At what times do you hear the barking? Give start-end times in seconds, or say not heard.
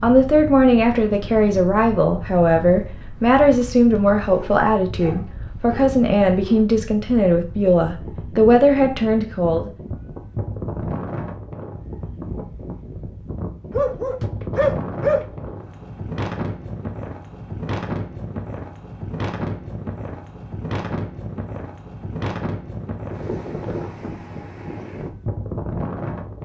4.0-6.7, 13.7-15.5.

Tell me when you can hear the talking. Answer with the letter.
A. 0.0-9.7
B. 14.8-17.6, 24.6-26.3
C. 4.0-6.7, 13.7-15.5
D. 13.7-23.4
A.